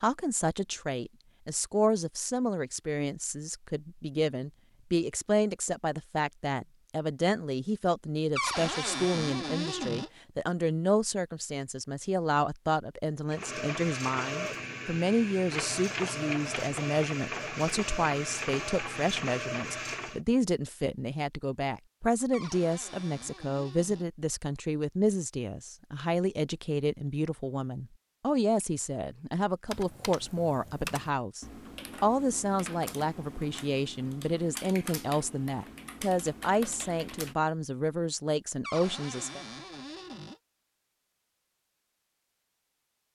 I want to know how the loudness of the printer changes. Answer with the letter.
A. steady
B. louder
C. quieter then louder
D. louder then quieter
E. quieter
A.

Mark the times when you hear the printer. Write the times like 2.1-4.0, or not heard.
13.3-20.2.